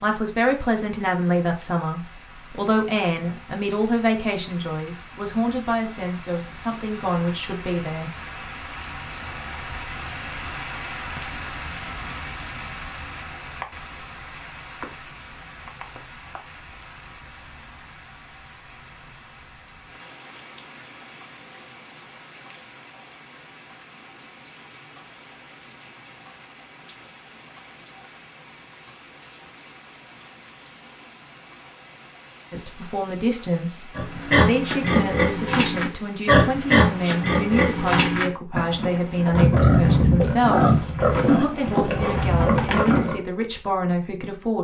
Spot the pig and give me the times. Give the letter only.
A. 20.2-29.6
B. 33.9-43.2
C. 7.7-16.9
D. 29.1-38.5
B.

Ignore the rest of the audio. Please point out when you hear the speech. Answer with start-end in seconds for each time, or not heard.
0.0-8.1, 32.5-44.5.